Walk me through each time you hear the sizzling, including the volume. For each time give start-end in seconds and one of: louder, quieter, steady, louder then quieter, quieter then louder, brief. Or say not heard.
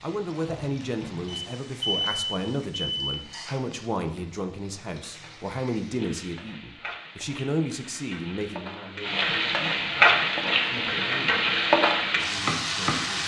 0.0-13.2 louder.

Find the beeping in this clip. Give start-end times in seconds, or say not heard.
1.2-3.2.